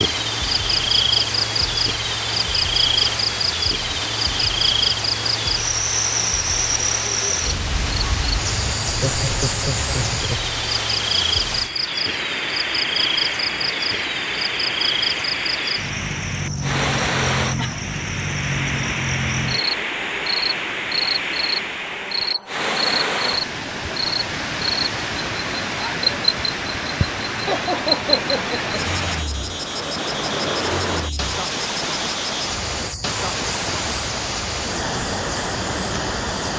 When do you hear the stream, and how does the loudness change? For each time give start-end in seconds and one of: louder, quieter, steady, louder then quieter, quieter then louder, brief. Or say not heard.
0.0-36.5 steady.